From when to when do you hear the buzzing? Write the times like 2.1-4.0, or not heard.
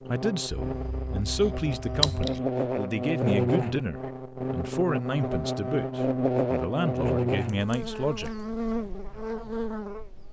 0.0-10.2.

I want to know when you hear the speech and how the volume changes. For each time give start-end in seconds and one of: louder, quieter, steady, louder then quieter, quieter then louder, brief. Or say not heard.
0.0-8.3 steady.